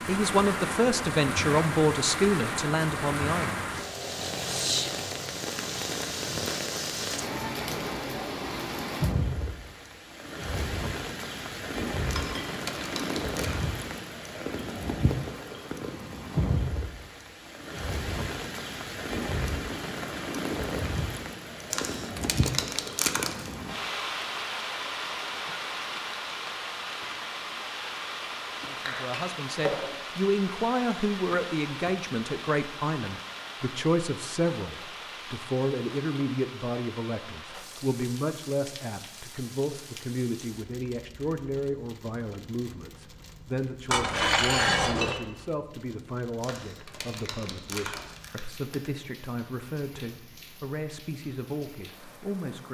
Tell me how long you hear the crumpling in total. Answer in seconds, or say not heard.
6 s.